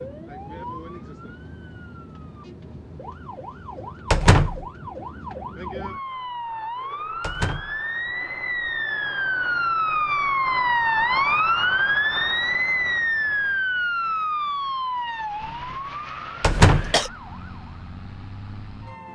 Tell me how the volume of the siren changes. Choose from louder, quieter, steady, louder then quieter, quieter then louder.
louder then quieter.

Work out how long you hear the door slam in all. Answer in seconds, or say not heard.
2 s.